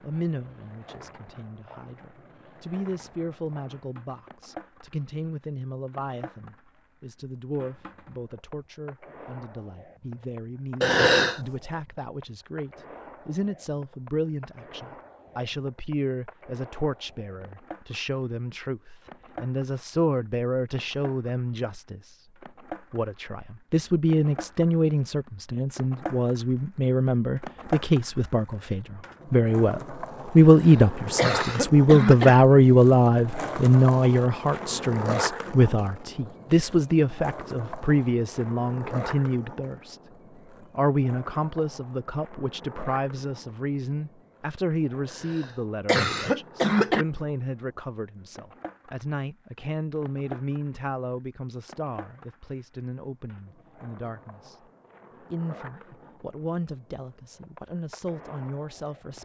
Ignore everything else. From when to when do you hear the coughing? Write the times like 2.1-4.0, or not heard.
10.8-11.4, 30.5-32.4, 45.2-47.0.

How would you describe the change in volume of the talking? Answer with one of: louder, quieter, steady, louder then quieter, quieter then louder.
louder then quieter.